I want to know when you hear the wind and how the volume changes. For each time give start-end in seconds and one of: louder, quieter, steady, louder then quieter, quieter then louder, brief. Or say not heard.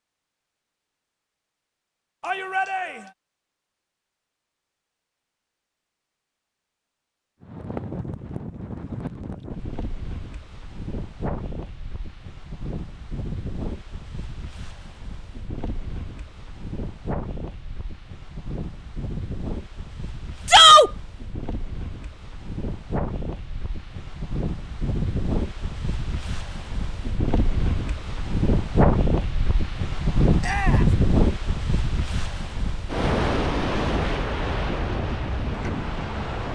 7.4-36.5 louder.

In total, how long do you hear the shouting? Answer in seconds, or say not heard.
2 s.